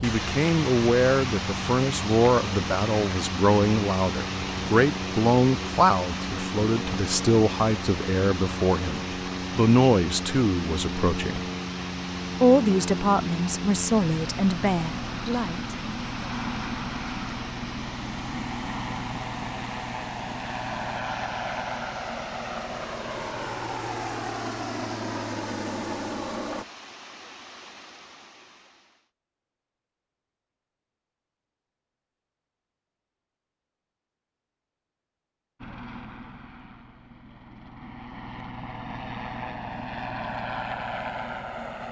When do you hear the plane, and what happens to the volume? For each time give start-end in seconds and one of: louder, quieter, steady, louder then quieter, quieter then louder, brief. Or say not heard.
0.0-26.6 steady
35.6-41.8 louder.